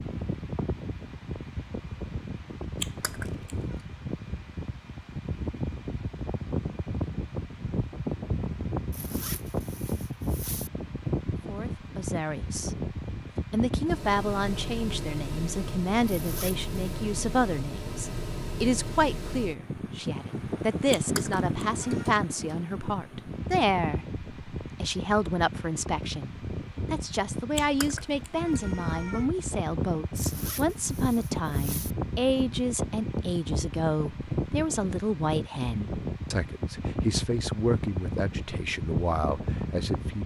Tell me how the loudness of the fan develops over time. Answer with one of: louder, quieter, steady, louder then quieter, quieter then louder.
steady.